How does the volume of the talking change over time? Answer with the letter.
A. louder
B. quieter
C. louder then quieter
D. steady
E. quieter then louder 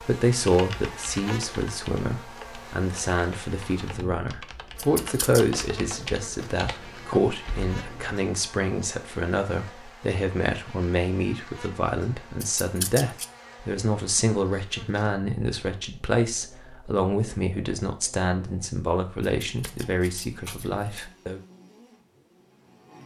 D.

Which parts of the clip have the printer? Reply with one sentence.
You can't hear the printer here.